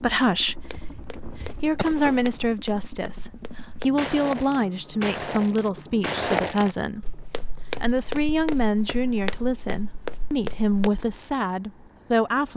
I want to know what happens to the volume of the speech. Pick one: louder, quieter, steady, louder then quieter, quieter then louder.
steady.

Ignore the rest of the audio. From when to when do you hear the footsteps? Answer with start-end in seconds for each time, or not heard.
0.5-11.0.